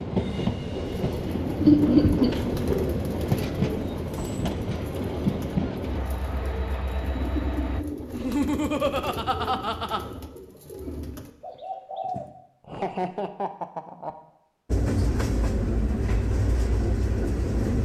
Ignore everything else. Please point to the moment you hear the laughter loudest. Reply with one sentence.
The loudest moment of the laughter is at 2 seconds.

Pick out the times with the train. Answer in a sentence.
The train can be heard from 0.0 to 7.8 s and from 14.7 to 17.8 s.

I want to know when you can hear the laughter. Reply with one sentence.
You can hear the laughter from 1.6 to 2.3 s, from 8.1 to 10.0 s and from 12.7 to 14.2 s.